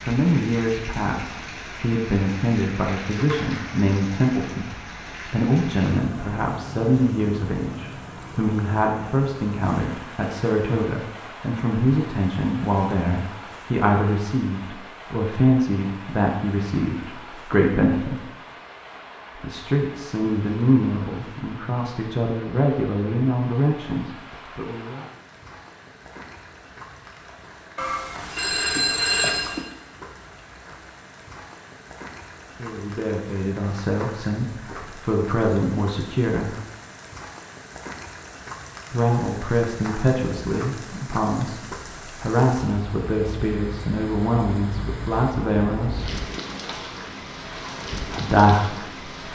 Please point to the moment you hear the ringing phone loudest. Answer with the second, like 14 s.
29 s.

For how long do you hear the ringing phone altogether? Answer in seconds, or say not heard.
2 s.